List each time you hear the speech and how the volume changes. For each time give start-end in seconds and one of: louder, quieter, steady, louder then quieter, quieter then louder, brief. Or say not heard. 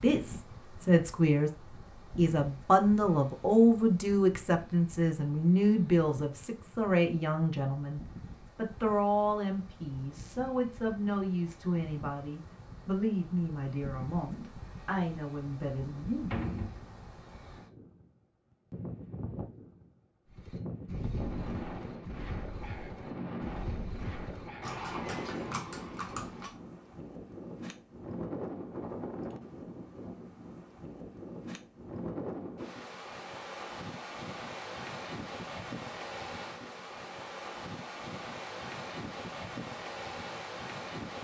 0.0-1.5 brief
2.1-16.6 quieter.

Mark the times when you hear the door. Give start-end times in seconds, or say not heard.
16.3-16.8.